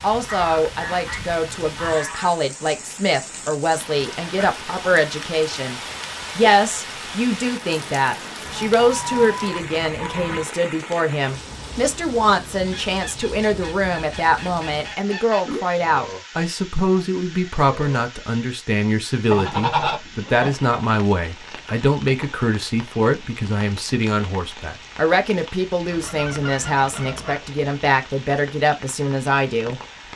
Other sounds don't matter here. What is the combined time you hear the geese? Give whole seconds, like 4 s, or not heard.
10 s.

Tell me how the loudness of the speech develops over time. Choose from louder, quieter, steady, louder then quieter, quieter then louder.
steady.